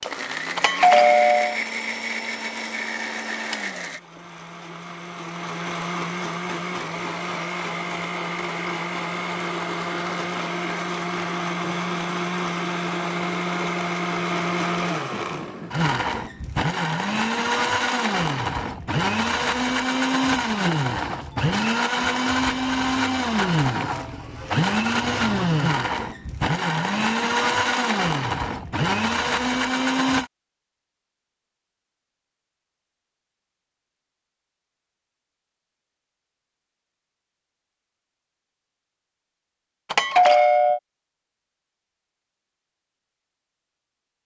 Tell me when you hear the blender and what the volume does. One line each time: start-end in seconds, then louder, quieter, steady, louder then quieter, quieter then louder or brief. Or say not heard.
0.0-30.3 louder.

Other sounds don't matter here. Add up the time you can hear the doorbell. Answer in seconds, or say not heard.
2 s.